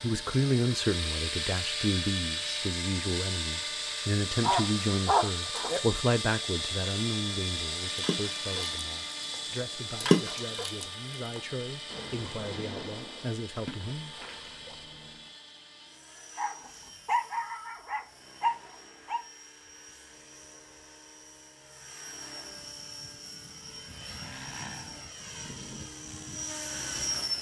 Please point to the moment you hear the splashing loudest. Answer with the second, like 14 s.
10 s.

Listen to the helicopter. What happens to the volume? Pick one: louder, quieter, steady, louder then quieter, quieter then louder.
quieter then louder.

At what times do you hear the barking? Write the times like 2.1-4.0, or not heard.
4.4-5.8, 16.4-19.2.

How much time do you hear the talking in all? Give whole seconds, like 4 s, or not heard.
14 s.